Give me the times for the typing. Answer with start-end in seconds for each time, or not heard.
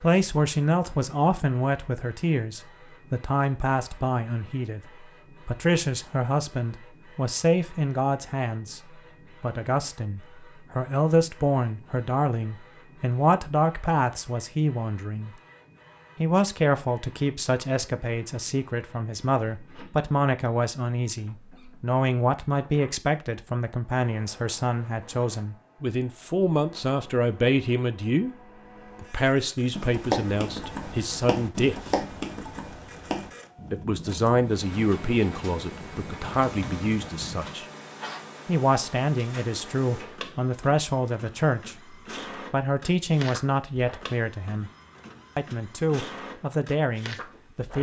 29.7-37.6.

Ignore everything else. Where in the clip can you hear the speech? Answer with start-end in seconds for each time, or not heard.
0.0-15.3, 16.1-28.4, 29.0-31.9, 33.7-37.6, 38.5-44.7, 45.4-47.7.